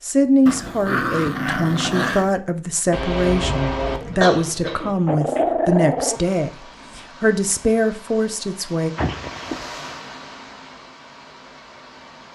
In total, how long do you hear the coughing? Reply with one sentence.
You can hear the coughing for 2 seconds altogether.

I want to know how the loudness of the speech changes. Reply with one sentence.
The loudness of the speech stays about the same.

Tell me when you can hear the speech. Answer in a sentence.
You can hear the speech from 0.0 to 8.9 s.